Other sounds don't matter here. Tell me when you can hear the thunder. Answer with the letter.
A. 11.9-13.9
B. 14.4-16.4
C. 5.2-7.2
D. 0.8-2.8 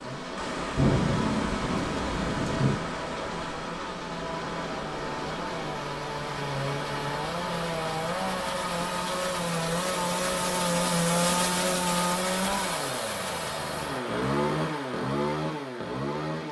D.